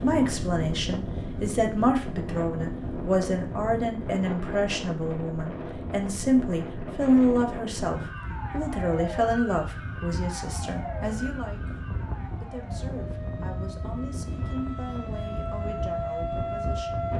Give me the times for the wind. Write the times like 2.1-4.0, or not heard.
0.0-17.1.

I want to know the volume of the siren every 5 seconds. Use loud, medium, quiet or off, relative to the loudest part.
off, medium, medium, loud.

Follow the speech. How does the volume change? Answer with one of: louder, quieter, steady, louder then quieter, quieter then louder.
quieter.